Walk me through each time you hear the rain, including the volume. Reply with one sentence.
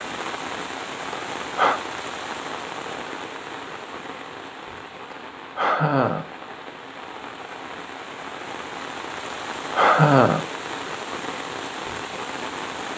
You can hear the rain from 0.0 to 12.9 s, getting quieter then louder.